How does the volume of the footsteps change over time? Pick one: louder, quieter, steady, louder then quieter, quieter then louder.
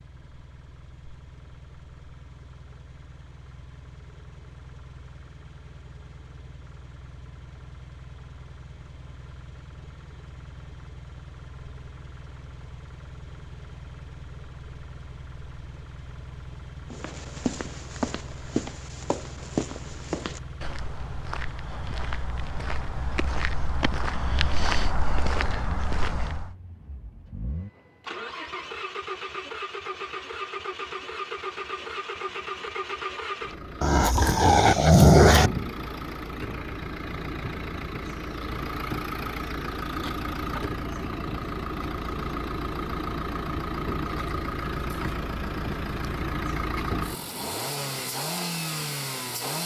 quieter then louder.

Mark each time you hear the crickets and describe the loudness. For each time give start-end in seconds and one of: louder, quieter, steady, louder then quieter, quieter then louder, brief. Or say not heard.
not heard.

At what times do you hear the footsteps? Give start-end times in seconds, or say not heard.
16.9-26.5.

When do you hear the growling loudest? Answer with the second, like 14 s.
35 s.